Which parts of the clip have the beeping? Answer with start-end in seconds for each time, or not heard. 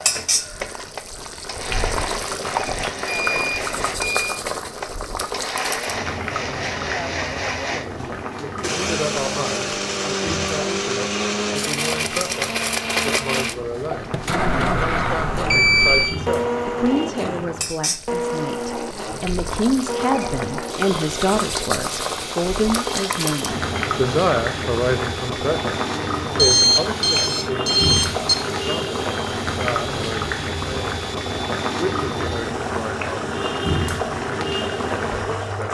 2.9-4.3, 14.6-16.1, 26.4-28.4.